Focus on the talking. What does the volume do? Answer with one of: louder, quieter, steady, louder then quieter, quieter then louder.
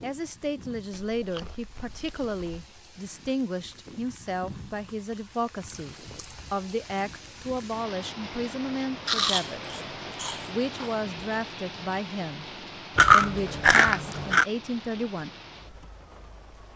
steady.